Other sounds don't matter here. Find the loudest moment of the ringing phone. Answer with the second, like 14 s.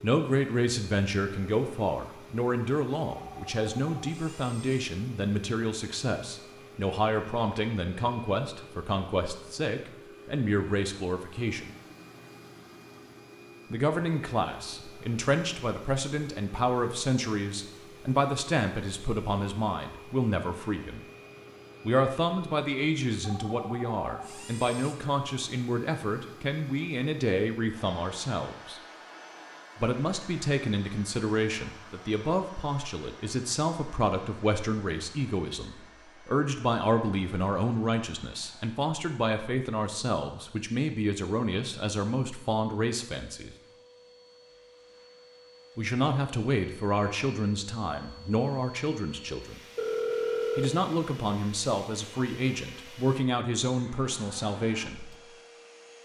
50 s.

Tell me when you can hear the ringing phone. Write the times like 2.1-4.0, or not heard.
3.1-4.8, 23.2-24.9, 49.8-50.8.